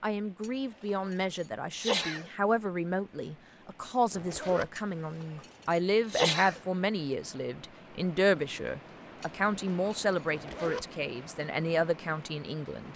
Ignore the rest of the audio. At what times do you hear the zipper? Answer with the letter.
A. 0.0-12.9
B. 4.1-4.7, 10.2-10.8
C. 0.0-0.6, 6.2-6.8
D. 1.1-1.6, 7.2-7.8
B.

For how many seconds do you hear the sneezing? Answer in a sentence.
You can hear the sneezing for 5 seconds altogether.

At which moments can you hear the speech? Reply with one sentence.
You can hear the speech from 0.0 to 12.9 s.